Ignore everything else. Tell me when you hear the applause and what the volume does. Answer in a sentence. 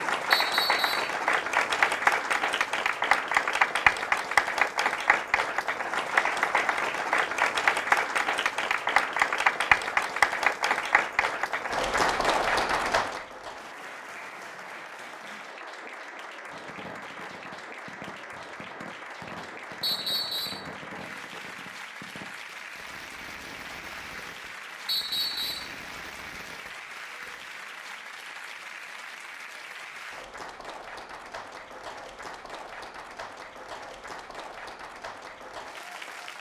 You can hear the applause from 0.0 to 36.3 s, getting quieter.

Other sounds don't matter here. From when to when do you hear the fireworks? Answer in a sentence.
The fireworks can be heard from 16.4 to 27.5 s.